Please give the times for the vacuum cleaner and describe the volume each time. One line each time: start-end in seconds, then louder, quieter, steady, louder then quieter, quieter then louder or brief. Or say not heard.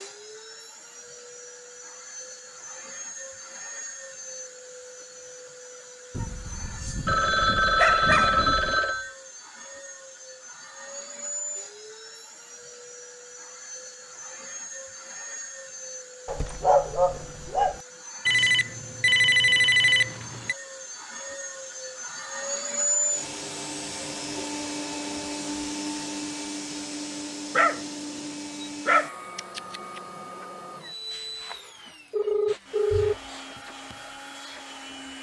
0.0-35.1 louder then quieter.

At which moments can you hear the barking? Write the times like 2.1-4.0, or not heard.
6.2-8.8, 16.2-17.8, 27.6-30.0.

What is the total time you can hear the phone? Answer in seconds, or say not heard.
7 s.